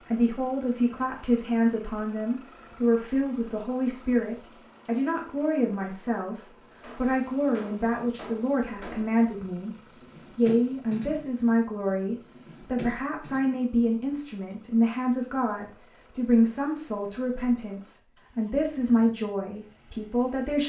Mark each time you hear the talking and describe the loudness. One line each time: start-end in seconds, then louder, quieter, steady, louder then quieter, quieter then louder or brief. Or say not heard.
0.1-9.8 steady
10.3-20.6 steady.